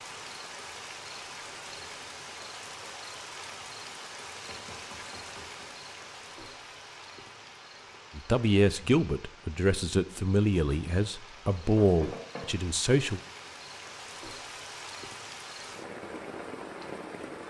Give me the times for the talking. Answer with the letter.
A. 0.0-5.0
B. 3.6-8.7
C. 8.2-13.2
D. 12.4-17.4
C.